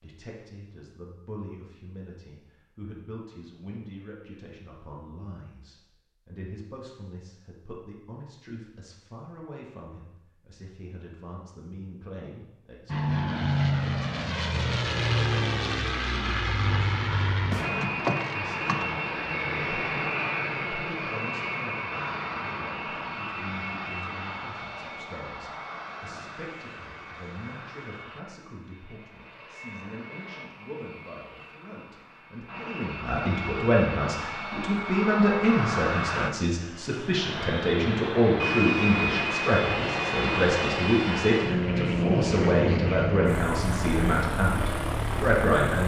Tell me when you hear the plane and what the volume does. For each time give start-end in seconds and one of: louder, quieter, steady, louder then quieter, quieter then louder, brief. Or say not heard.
12.8-45.8 quieter then louder.